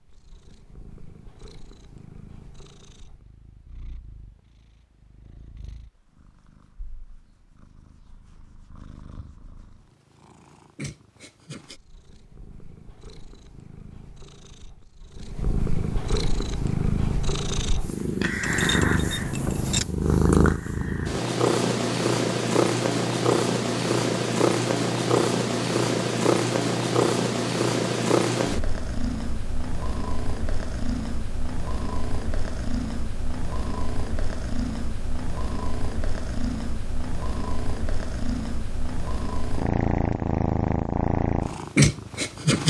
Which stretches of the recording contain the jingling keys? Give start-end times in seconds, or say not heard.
18.4-19.9.